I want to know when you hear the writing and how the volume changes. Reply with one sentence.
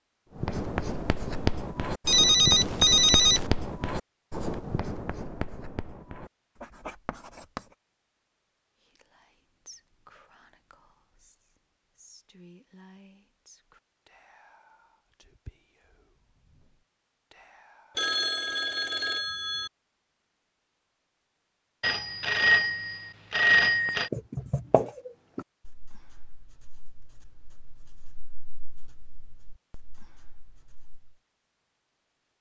You can hear the writing from 0.3 to 7.7 s, getting quieter; and from 24.0 to 31.1 s, getting quieter.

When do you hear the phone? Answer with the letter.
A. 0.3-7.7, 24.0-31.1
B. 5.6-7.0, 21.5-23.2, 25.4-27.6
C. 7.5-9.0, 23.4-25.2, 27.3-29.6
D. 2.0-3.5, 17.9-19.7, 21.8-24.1
D.